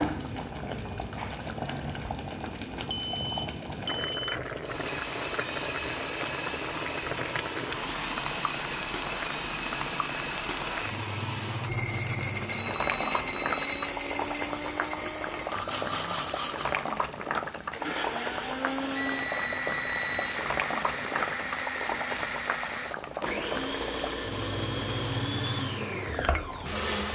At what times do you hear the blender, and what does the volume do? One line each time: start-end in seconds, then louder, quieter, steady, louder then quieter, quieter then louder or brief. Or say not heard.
4.6-27.1 steady.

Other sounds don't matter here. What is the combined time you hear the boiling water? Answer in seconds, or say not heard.
27 s.